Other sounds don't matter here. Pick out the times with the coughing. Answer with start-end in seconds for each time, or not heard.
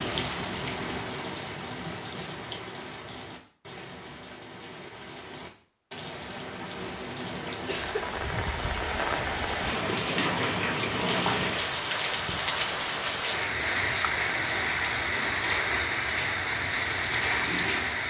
7.7-8.1.